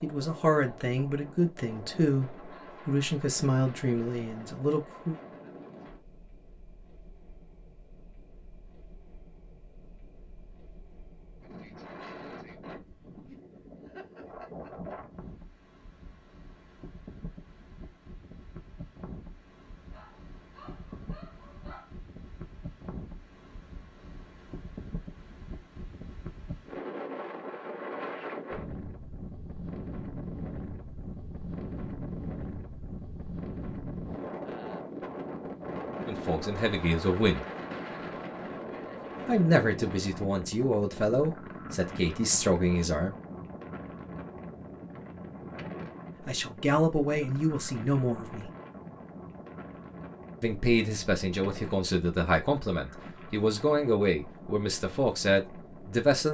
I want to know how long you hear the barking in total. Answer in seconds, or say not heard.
2 s.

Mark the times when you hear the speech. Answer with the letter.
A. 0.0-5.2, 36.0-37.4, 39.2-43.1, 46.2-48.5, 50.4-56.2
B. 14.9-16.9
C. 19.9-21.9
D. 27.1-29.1
A.